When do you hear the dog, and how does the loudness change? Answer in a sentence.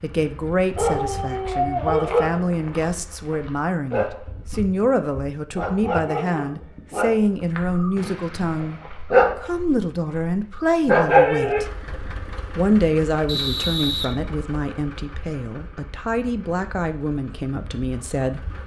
You can hear the dog from 0.8 to 11.6 s, getting quieter then louder.